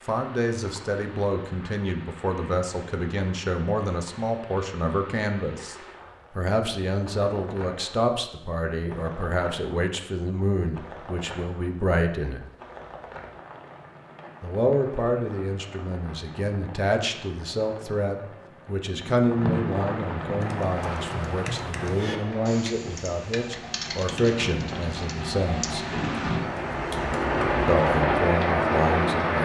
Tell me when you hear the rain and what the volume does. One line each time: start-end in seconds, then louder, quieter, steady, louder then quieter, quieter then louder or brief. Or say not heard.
0.0-29.4 louder.